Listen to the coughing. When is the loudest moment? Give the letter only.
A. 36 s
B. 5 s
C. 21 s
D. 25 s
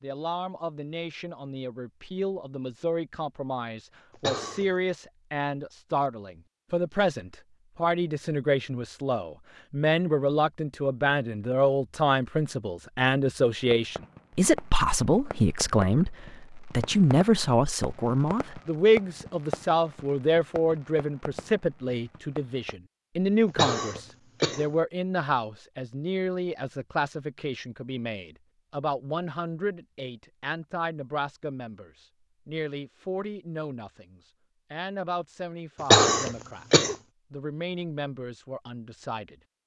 A.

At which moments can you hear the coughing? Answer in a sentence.
The coughing can be heard from 4.2 to 4.7 s, from 23.6 to 24.6 s and from 35.9 to 37.0 s.